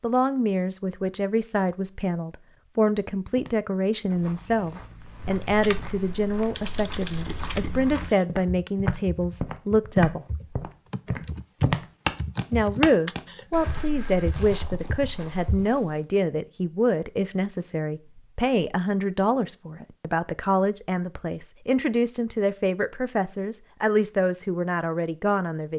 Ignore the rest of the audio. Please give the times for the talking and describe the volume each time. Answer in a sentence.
The talking can be heard from 0.0 to 10.2 s, at a steady volume; and from 12.5 to 25.7 s, at a steady volume.